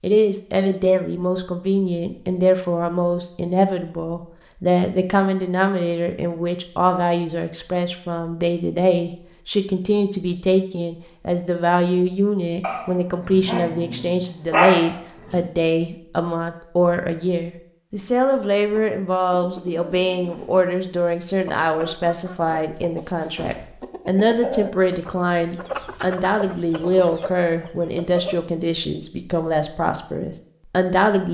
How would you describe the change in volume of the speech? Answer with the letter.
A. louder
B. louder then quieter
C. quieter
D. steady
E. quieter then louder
D.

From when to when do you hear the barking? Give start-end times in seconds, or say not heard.
12.6-15.4.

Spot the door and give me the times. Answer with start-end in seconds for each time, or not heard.
23.2-23.8.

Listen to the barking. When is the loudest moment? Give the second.
15 s.